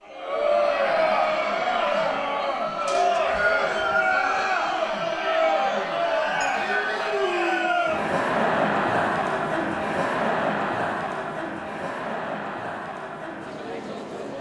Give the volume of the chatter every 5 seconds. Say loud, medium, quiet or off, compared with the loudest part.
loud, loud, medium.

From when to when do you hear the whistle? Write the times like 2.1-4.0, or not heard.
2.9-4.3.